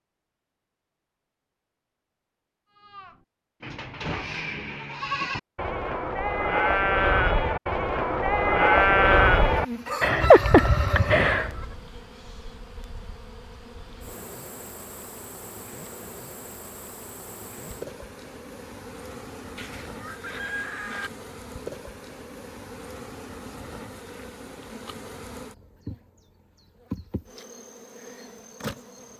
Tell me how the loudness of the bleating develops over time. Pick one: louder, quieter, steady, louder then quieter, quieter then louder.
louder.